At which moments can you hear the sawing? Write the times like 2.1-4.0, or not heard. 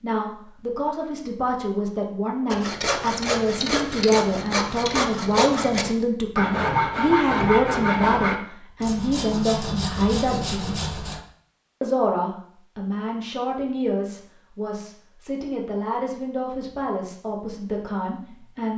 2.5-11.2.